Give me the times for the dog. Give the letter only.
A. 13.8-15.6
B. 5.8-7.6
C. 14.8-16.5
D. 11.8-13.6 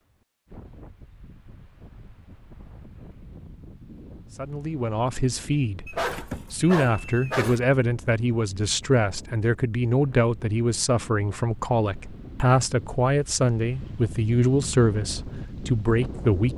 B.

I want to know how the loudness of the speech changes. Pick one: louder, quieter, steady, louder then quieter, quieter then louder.
steady.